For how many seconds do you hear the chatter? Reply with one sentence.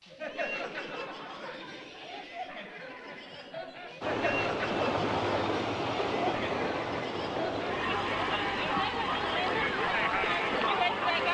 You can hear the chatter for 11 seconds altogether.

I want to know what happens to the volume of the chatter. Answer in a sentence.
The loudness of the chatter goes up.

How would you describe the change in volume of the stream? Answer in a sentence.
The loudness of the stream goes down.